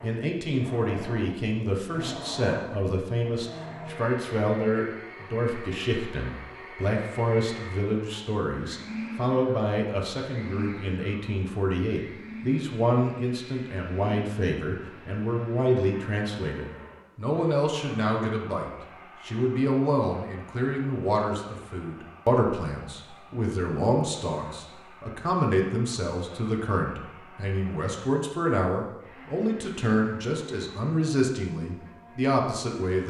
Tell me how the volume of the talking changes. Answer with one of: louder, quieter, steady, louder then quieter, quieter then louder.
steady.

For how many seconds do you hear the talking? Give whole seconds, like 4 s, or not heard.
33 s.